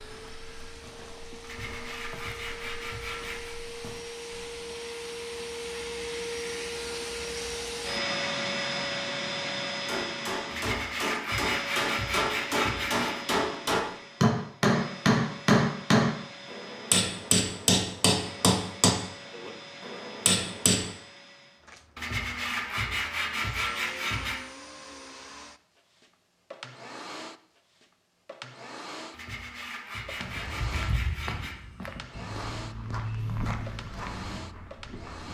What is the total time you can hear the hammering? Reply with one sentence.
You can hear the hammering for 11 seconds altogether.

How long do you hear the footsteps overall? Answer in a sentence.
The footsteps can be heard for 10 seconds in total.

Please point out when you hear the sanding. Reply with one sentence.
You can hear the sanding from 1.4 to 3.5 s, from 10.5 to 13.2 s, from 21.9 to 24.4 s and from 29.1 to 31.6 s.